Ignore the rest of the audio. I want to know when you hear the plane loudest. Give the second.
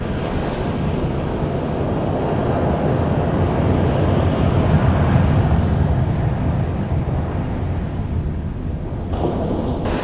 5 s.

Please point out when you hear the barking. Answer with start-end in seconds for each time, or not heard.
not heard.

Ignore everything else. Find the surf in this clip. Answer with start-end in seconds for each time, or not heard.
0.0-9.9.